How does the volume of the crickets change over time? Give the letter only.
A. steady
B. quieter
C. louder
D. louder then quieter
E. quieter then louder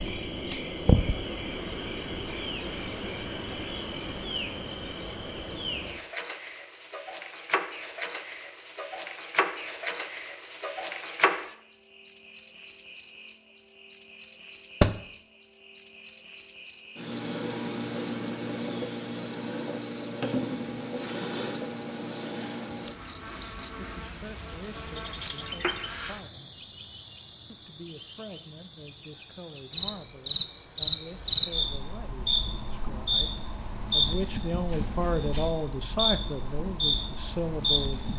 C.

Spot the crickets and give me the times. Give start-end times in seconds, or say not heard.
0.0-38.1.